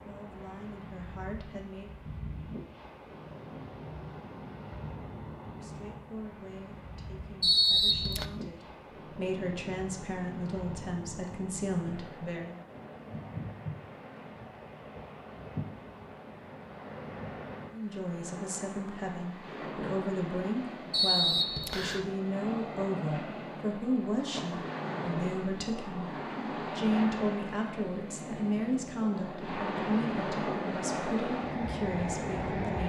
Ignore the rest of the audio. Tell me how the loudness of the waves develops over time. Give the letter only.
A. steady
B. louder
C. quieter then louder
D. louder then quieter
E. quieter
B.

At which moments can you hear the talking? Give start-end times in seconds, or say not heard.
0.1-1.9, 5.5-12.6, 17.6-32.8.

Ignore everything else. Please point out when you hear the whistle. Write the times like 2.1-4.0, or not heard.
7.4-8.2, 20.9-22.1.